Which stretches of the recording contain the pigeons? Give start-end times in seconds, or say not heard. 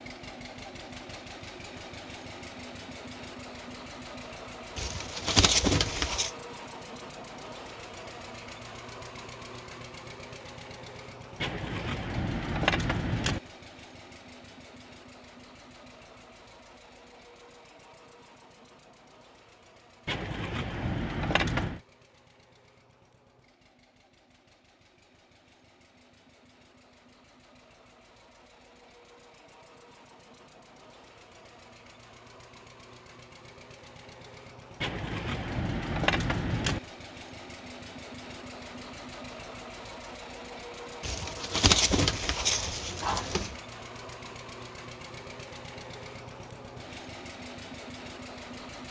4.8-6.3, 41.0-43.5.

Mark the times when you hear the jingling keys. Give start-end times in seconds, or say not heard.
11.4-13.4, 20.1-21.8, 34.8-36.8.